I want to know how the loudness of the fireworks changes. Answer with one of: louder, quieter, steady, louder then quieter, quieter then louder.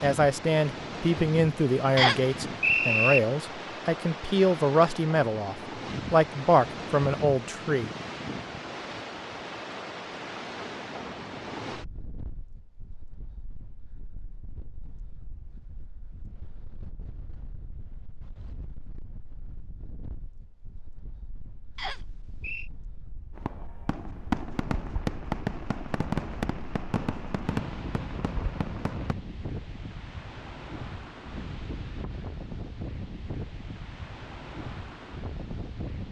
quieter.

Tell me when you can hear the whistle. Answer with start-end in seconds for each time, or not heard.
1.9-3.2, 21.8-22.7.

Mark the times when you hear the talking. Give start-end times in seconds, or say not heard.
0.0-7.9.